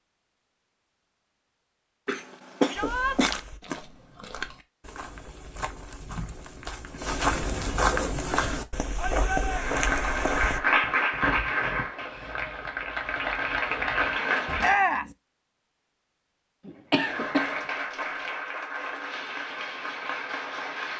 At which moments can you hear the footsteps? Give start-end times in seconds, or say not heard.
2.8-10.6.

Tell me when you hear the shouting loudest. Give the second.
15 s.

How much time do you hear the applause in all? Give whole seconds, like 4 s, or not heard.
9 s.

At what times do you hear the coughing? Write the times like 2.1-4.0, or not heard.
2.0-3.4, 16.6-17.6.